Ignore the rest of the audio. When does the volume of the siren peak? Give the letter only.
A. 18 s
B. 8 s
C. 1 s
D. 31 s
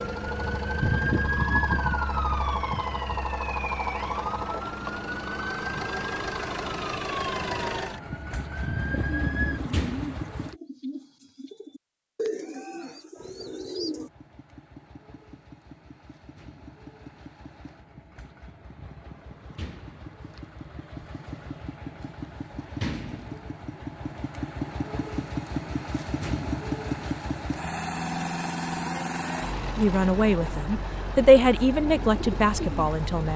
C.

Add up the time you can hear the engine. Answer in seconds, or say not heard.
31 s.